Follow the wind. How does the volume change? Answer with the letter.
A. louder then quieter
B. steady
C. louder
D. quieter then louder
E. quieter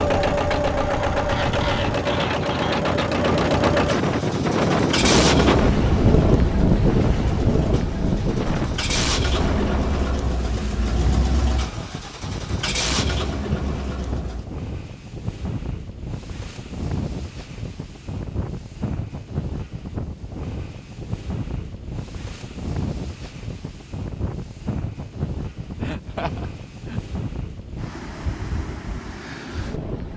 E.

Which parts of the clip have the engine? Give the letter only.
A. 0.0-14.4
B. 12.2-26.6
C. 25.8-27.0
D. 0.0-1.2
A.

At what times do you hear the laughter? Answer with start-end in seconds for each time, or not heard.
25.8-27.0.